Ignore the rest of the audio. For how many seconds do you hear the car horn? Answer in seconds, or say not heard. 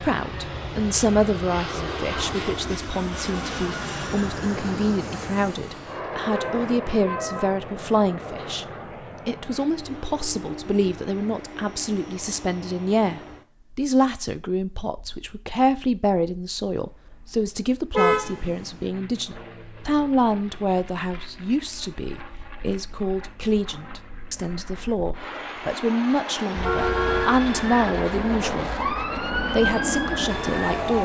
3 s.